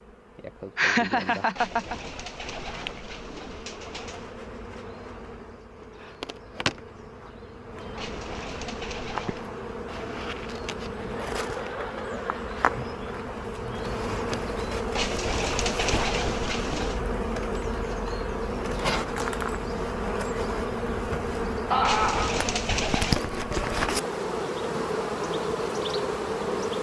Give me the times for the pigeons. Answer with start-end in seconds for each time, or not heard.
1.6-4.5, 8.0-9.4, 14.9-17.1, 21.8-23.3.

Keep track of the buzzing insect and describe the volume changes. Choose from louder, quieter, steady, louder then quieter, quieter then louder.
louder.